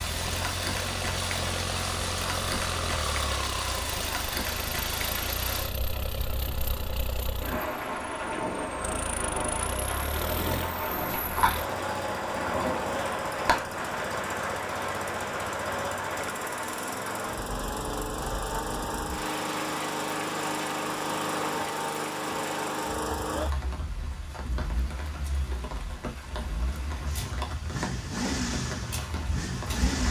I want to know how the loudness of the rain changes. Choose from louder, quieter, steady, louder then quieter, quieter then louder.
quieter.